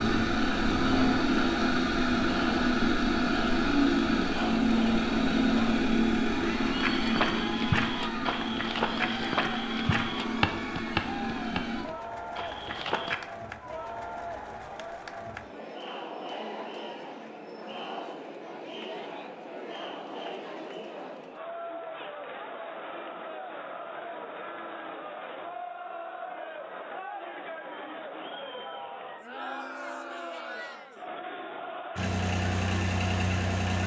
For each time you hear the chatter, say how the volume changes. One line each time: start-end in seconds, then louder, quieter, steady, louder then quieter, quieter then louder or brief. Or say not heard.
0.2-33.8 steady.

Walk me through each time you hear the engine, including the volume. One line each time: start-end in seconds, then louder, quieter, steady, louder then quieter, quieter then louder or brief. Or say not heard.
0.0-11.8 quieter
31.9-33.8 brief.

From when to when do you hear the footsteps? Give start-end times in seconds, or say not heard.
6.8-13.2.